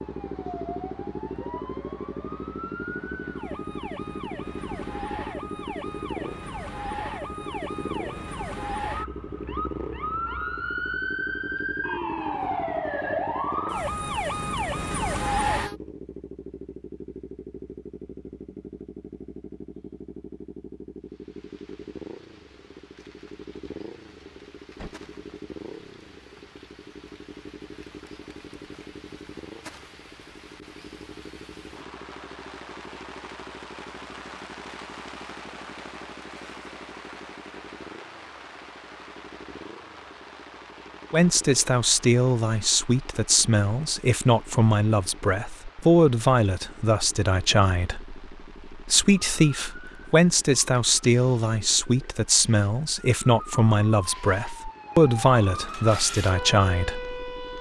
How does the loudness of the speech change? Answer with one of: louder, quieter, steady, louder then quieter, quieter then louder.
steady.